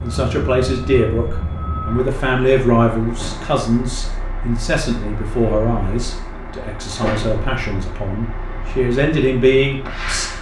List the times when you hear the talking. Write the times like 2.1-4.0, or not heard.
0.0-10.3.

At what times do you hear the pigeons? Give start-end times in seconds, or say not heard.
not heard.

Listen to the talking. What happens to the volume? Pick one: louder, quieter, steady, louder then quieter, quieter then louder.
quieter then louder.